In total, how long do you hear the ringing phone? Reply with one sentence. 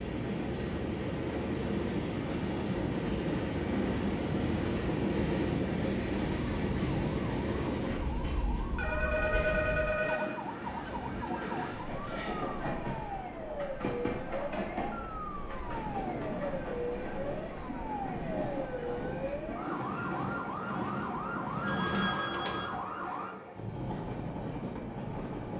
The ringing phone can be heard for 3 seconds in total.